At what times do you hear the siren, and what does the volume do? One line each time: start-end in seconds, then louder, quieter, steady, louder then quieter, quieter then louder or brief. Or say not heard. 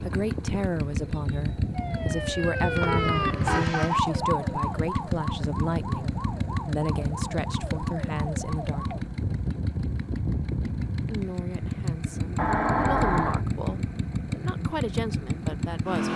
1.7-9.1 quieter.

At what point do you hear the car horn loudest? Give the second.
13 s.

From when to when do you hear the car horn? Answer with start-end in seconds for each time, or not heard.
2.8-3.8, 12.3-13.4.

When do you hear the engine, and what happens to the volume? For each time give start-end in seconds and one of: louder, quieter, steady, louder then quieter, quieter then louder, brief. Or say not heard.
0.0-16.1 steady.